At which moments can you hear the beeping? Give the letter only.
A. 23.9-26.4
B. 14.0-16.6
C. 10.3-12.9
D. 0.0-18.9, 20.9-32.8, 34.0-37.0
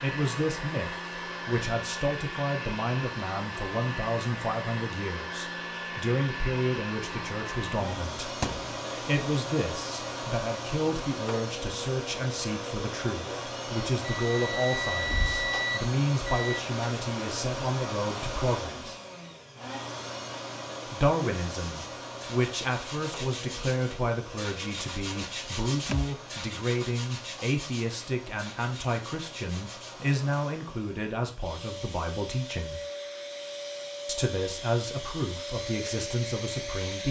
B.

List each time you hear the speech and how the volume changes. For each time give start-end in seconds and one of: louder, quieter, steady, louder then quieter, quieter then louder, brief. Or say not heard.
0.0-18.9 steady
20.9-32.8 steady
34.0-37.0 brief.